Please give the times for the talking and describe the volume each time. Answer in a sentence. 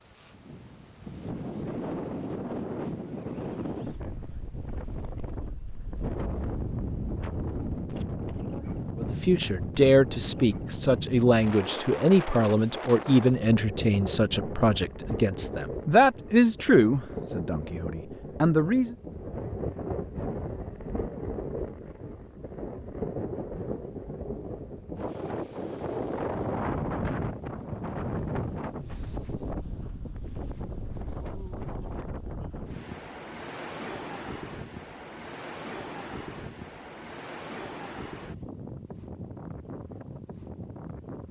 The talking can be heard from 8.9 to 18.9 s, at a steady volume.